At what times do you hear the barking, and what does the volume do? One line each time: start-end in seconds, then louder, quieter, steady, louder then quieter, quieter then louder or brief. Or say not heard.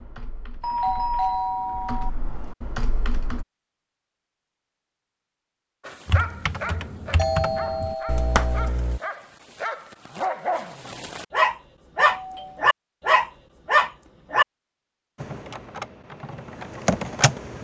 5.8-14.4 louder.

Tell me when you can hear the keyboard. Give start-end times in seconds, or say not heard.
0.0-3.5, 6.0-9.0, 15.2-17.5.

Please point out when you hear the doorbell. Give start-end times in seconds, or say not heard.
0.6-2.1, 7.2-8.7, 11.9-12.7.